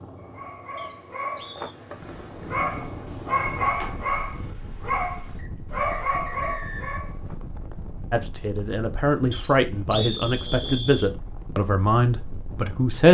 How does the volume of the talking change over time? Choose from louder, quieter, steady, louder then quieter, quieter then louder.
steady.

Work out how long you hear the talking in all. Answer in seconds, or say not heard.
5 s.